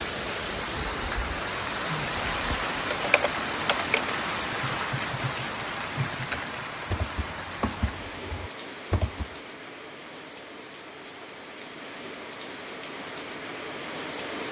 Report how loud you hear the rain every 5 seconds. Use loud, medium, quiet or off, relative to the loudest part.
loud, medium, medium.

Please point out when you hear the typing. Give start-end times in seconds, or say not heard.
2.9-9.2.